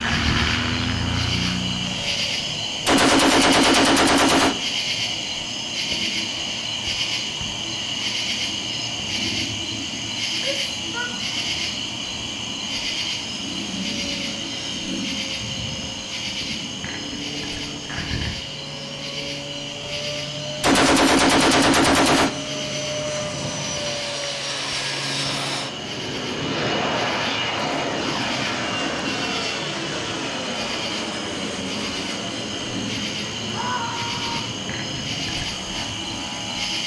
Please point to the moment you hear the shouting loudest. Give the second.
34 s.